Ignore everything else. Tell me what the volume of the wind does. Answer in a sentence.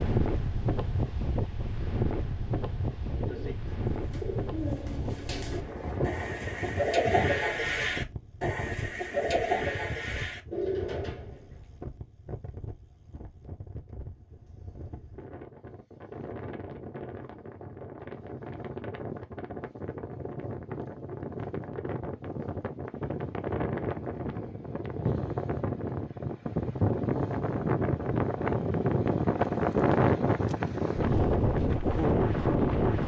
The volume of the wind goes down, then up.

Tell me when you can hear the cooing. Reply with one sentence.
The cooing can be heard from 3.1 to 11.6 s.